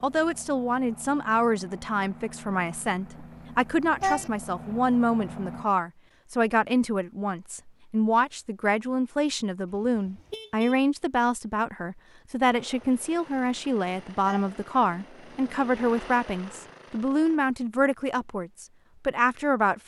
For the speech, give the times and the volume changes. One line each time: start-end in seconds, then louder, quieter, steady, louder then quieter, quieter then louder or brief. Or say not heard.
0.0-19.8 steady.